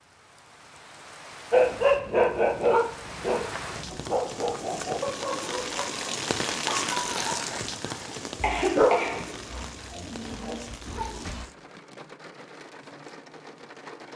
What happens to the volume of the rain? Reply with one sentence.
The volume of the rain goes up, then down.